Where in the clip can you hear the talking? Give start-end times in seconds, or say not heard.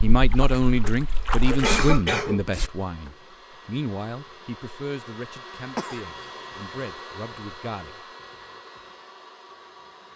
0.0-8.1.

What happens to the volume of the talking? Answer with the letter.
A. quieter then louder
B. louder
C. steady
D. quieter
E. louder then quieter
D.